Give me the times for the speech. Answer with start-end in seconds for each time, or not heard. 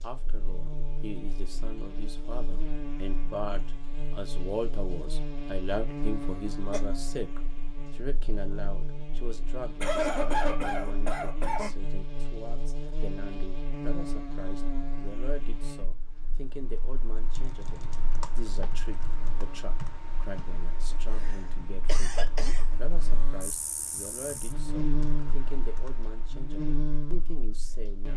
0.0-28.1.